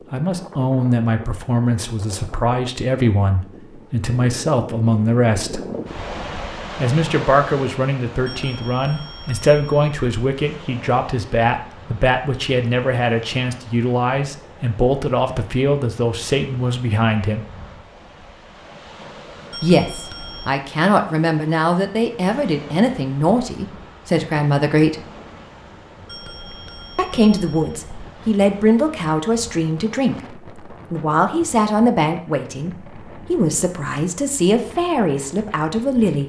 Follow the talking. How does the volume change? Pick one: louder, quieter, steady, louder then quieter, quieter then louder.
steady.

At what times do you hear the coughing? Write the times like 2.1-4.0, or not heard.
not heard.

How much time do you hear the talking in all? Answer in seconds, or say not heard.
31 s.